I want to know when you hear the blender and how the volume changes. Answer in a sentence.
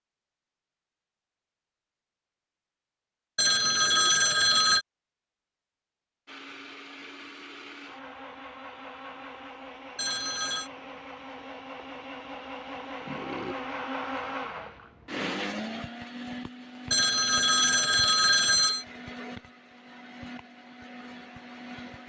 You can hear the blender from 6.2 to 22.0 s, getting louder then quieter.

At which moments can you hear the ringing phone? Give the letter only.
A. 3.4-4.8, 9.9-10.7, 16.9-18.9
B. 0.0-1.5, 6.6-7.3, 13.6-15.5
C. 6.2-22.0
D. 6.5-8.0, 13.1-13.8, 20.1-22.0
A.